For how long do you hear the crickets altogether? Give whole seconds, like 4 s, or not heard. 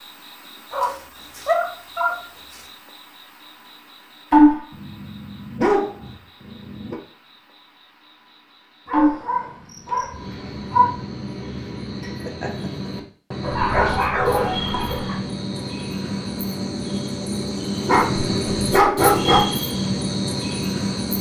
21 s.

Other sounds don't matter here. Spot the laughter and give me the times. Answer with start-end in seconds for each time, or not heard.
12.2-12.9.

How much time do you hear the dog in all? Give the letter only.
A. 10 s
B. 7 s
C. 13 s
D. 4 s
A.